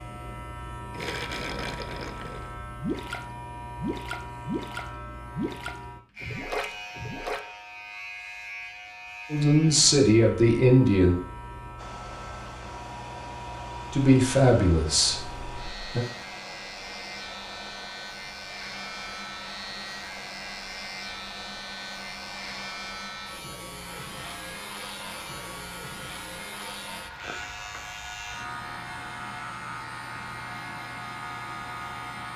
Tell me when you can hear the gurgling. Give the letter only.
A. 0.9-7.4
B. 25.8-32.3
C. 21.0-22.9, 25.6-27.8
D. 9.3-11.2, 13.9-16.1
A.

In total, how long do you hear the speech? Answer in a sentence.
You can hear the speech for 4 seconds altogether.